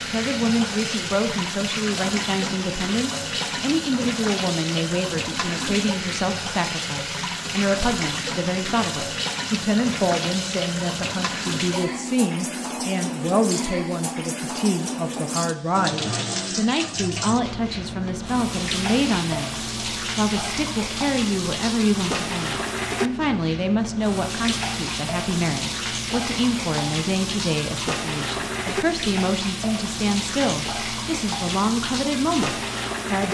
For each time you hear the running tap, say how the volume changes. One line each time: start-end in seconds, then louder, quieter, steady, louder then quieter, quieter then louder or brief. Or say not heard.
0.0-33.2 steady.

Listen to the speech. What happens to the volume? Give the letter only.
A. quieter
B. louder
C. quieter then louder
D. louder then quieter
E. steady
E.